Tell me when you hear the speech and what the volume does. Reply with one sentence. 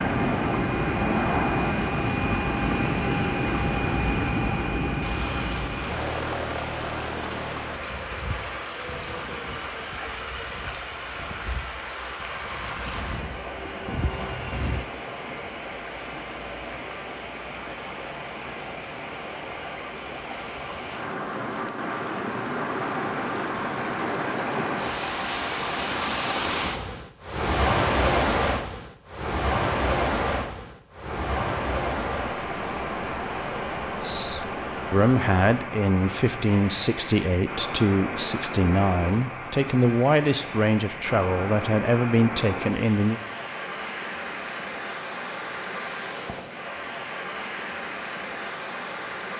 You can hear the speech from 34.0 to 43.2 s, at a steady volume.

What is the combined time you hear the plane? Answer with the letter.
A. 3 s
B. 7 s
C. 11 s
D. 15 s
D.